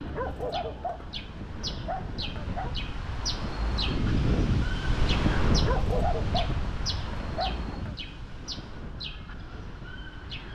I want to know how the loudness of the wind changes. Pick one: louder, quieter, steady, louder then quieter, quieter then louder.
louder then quieter.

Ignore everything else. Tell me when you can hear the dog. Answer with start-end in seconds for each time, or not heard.
0.0-2.8, 5.5-8.0.